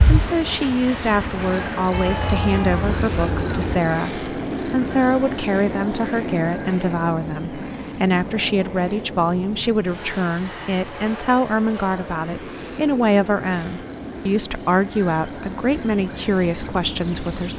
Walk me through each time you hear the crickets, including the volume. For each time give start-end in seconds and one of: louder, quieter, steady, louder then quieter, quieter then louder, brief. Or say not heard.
0.0-17.5 quieter then louder.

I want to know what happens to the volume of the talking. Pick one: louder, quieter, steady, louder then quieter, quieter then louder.
steady.